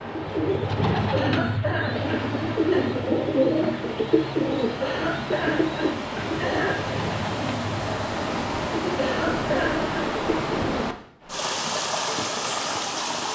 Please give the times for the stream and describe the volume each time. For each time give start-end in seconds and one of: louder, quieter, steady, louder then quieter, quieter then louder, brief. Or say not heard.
0.0-13.2 louder.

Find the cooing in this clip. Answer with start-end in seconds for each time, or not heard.
0.0-11.1.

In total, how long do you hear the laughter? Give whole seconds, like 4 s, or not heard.
5 s.